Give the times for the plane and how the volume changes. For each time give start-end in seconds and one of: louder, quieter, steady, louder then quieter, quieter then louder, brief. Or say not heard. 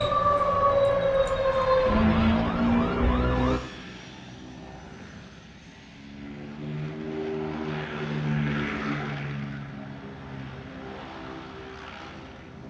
0.1-12.6 louder then quieter.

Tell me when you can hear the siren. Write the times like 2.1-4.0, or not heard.
0.0-3.6.